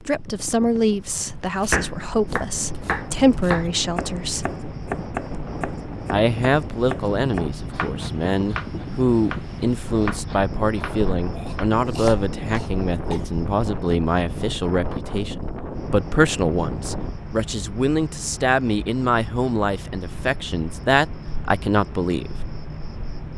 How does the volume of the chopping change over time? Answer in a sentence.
The volume of the chopping goes down.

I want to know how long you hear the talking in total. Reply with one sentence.
You can hear the talking for 21 seconds altogether.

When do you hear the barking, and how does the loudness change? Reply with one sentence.
You can't hear the barking here.